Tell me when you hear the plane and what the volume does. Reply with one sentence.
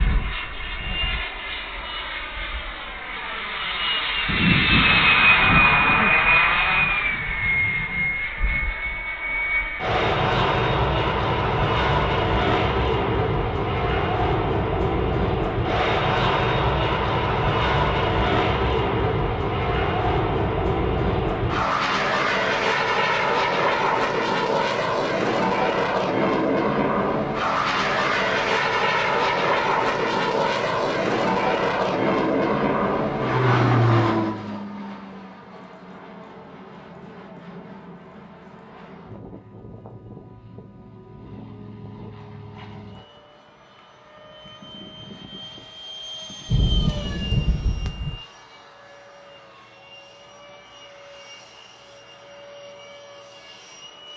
You can hear the plane from 0.0 to 54.1 s, getting quieter.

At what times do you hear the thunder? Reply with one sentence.
You can hear the thunder from 4.2 to 8.2 s and from 46.5 to 48.2 s.